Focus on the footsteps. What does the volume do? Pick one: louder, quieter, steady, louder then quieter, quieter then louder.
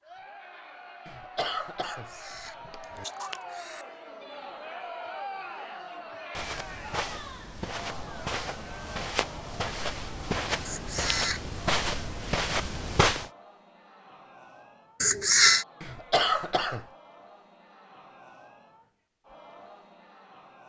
louder.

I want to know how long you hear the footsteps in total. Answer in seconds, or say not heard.
7 s.